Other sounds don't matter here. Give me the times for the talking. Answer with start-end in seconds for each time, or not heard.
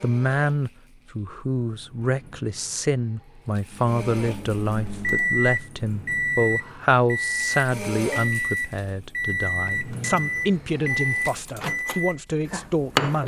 0.0-13.2.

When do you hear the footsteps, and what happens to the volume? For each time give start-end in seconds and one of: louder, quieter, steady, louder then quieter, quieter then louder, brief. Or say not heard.
not heard.